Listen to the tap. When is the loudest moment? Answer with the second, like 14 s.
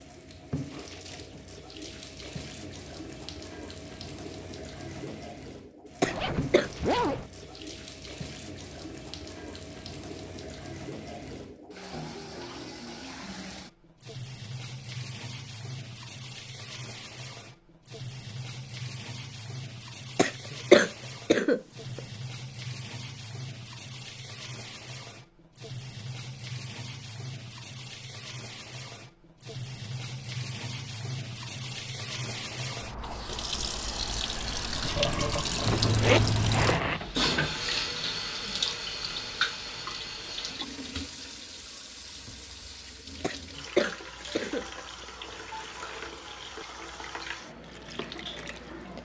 36 s.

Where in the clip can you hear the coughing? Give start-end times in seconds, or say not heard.
6.0-6.7, 20.1-22.0, 43.2-45.0.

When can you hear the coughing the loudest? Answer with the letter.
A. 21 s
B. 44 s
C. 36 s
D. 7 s
A.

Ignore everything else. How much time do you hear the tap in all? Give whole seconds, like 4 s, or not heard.
49 s.